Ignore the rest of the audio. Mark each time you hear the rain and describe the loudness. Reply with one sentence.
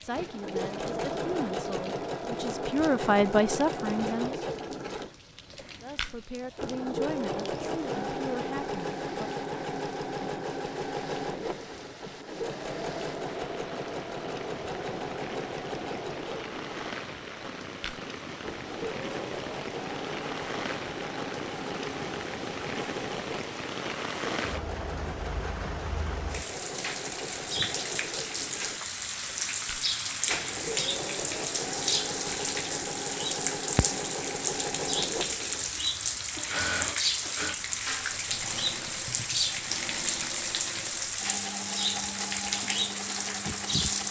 You can hear the rain from 0.0 to 44.0 s, getting louder.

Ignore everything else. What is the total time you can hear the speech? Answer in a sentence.
You can hear the speech for 8 seconds altogether.